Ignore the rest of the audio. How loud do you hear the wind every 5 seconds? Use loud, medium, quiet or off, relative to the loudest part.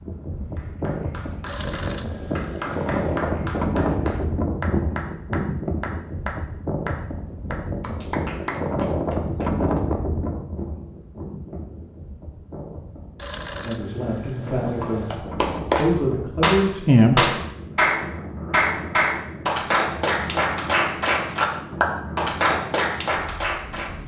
loud, loud, medium, medium, medium.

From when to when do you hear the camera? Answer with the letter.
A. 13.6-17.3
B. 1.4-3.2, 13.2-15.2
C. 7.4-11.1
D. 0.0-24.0
B.